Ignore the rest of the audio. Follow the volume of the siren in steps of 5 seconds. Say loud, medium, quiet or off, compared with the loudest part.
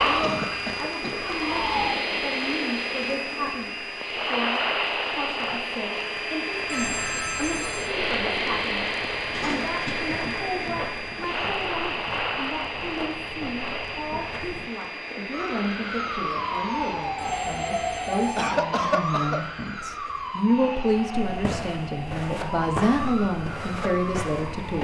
loud, off, off, loud, medium.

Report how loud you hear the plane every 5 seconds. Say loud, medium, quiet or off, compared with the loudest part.
loud, loud, loud, medium, quiet.